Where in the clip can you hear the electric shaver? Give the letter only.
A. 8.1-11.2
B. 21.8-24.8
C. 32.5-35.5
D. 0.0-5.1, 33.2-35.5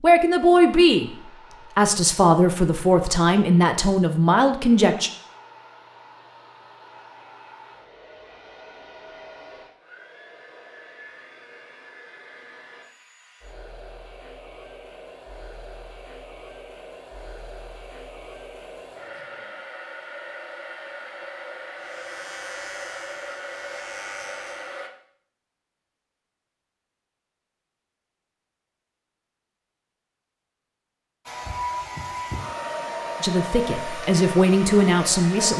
B.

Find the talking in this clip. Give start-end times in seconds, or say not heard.
0.0-5.1, 33.2-35.5.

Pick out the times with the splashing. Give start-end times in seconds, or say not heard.
not heard.